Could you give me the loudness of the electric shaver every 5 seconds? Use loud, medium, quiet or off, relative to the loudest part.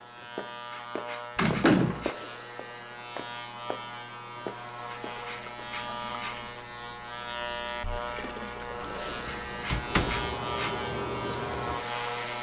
medium, loud, loud.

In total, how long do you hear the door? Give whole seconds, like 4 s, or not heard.
2 s.